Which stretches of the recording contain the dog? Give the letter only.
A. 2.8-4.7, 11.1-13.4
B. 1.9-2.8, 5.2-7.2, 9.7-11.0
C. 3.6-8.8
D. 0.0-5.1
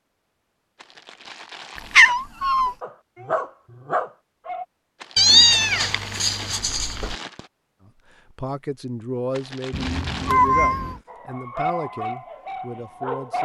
A.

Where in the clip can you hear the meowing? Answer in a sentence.
You can hear the meowing from 1.9 to 2.8 s, from 5.2 to 7.2 s and from 9.7 to 11.0 s.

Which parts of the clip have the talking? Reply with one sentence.
The talking can be heard from 8.3 to 13.4 s.